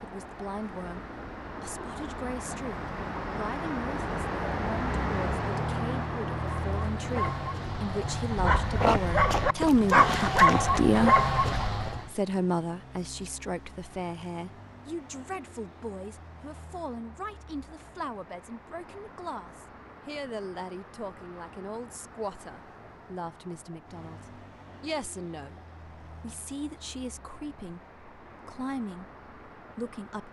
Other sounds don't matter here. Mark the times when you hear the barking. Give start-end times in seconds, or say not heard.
6.5-12.1.